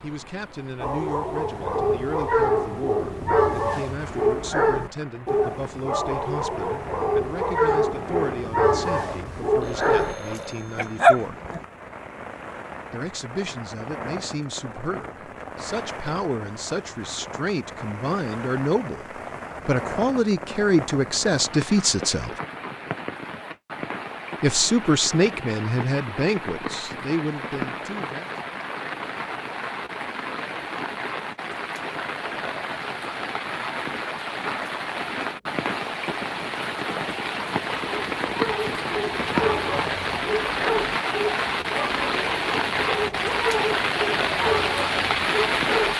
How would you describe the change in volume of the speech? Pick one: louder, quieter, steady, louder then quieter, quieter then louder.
louder.